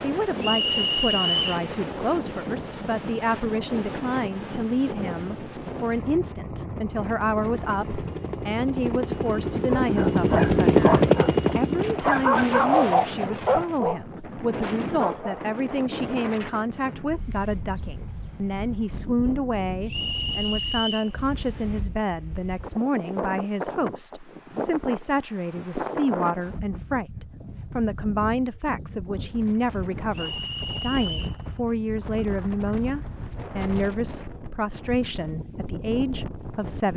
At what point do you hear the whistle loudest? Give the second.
1 s.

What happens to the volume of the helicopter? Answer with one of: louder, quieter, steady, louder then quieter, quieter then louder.
louder then quieter.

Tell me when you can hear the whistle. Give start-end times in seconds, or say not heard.
0.4-1.6, 19.9-21.1, 30.1-31.4.